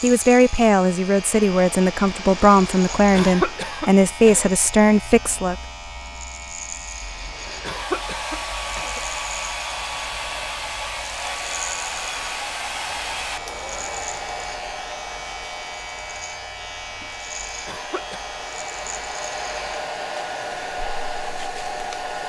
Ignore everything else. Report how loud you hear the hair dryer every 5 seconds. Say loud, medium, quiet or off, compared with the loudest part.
medium, loud, loud, medium, loud.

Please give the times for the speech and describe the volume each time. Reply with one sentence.
The speech can be heard from 0.0 to 5.5 s, at a steady volume.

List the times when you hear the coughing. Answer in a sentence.
You can hear the coughing from 3.1 to 4.5 s, from 7.6 to 9.0 s and from 17.6 to 18.2 s.